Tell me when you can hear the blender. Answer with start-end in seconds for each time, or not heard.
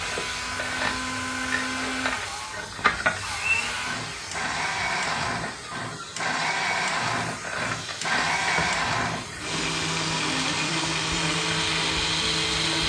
0.0-12.8.